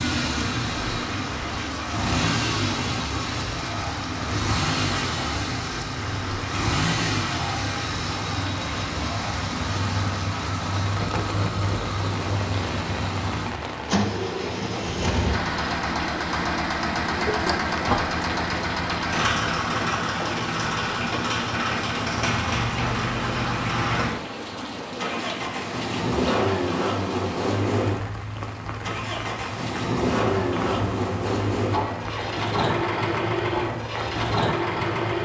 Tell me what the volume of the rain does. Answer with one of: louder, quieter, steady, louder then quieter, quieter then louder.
steady.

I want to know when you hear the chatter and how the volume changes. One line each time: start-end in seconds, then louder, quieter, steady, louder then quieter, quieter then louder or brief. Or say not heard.
not heard.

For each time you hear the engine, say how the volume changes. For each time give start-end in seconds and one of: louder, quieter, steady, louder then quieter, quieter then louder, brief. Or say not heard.
0.0-35.2 steady.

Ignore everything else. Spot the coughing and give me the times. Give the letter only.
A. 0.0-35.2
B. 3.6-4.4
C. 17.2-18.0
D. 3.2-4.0
C.